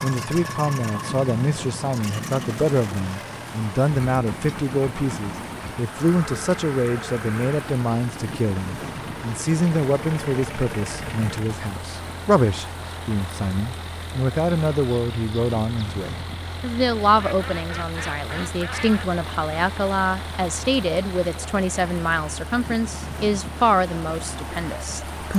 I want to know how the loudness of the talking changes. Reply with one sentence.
The volume of the talking stays about the same.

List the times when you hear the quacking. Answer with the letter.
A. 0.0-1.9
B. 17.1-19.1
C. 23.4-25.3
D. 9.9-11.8
B.